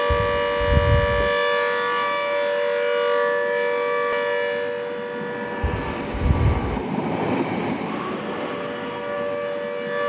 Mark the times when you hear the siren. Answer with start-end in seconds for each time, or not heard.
0.0-6.8, 8.2-10.0.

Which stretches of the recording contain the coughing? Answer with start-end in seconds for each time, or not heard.
0.1-1.3, 5.6-6.8.